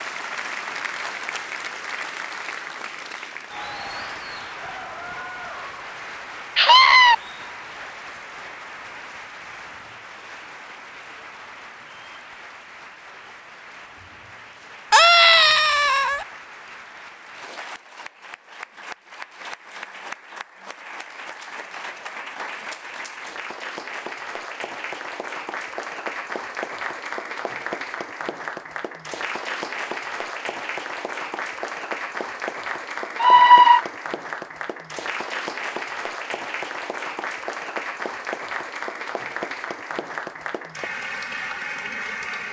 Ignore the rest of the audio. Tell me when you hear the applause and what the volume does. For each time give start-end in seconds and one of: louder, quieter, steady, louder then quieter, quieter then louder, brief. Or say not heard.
0.0-42.4 quieter then louder.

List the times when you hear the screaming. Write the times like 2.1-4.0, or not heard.
6.5-7.2, 14.9-16.2, 33.1-33.9.